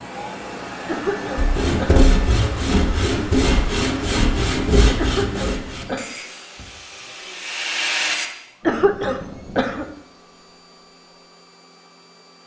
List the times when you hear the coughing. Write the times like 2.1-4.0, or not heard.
0.8-1.9, 5.0-6.0, 8.7-9.8.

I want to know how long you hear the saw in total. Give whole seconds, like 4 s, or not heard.
7 s.